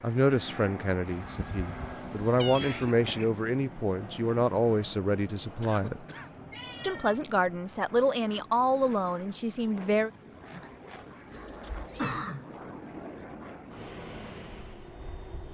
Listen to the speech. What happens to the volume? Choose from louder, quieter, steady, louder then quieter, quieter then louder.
steady.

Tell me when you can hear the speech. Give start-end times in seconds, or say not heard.
0.0-6.0, 6.8-10.1.